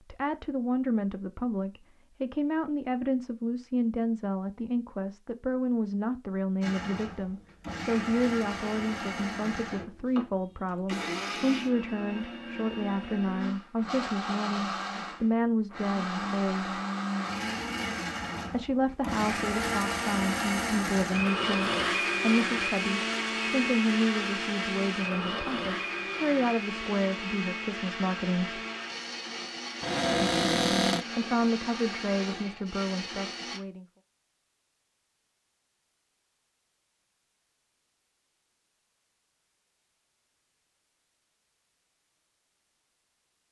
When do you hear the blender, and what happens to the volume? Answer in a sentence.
You can hear the blender from 6.6 to 33.6 s, getting louder then quieter.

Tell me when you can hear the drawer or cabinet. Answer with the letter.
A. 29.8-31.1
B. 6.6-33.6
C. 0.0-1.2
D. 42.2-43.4
A.